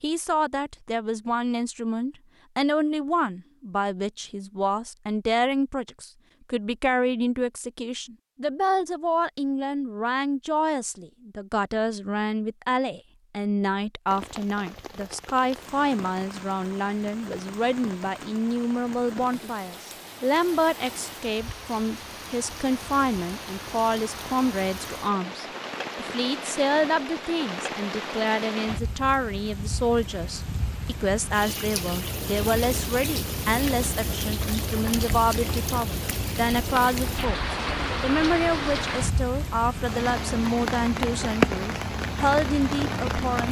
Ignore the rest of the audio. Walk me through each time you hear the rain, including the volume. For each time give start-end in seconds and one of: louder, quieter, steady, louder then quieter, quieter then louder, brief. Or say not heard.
14.1-43.4 louder.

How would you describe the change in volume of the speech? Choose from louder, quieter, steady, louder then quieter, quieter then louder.
steady.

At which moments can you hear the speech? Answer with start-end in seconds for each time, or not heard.
0.0-43.4.